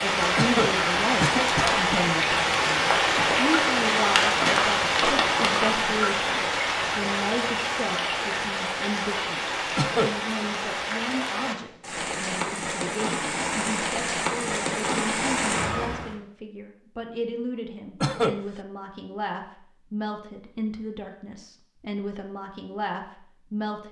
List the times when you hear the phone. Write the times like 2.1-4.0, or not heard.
not heard.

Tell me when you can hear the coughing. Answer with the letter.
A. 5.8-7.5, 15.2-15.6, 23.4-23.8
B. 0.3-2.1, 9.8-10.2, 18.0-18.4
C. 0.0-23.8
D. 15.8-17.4
B.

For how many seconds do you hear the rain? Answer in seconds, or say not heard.
16 s.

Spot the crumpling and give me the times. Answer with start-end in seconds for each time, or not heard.
4.1-5.8.